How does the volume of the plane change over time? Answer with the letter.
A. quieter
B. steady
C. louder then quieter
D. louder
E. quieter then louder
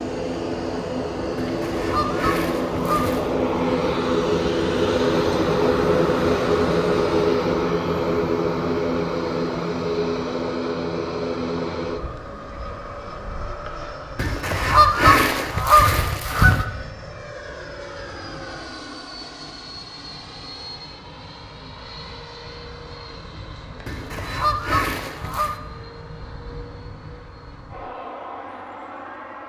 A.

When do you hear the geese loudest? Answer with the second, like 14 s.
15 s.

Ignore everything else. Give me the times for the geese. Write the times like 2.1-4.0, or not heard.
1.4-3.3, 14.2-16.6, 23.9-25.6.